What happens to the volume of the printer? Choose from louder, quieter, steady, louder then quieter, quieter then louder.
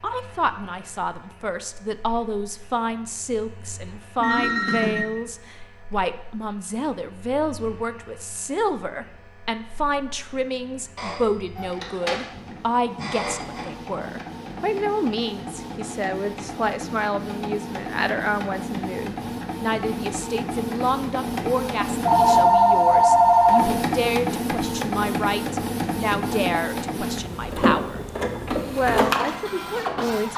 louder.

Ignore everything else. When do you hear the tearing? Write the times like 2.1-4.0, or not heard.
not heard.